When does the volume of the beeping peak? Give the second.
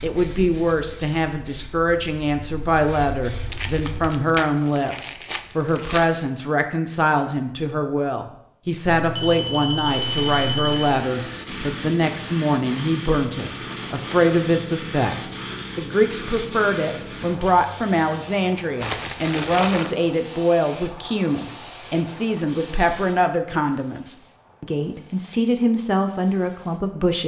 10 s.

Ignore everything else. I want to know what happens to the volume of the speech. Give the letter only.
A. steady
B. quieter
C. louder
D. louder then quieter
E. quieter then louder
A.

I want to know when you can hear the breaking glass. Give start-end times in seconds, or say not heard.
not heard.